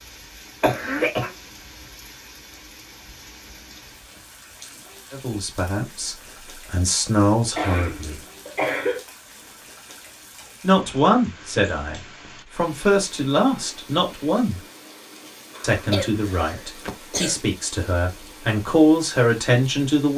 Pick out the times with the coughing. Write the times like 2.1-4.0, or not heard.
0.6-1.3, 7.5-9.0, 15.6-17.4.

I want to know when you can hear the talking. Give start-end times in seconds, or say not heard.
5.1-8.2, 10.6-14.6, 15.6-20.1.